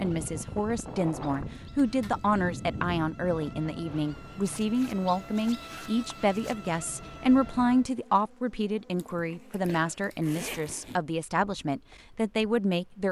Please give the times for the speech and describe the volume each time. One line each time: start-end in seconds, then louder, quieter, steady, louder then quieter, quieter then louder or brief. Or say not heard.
0.0-13.0 steady.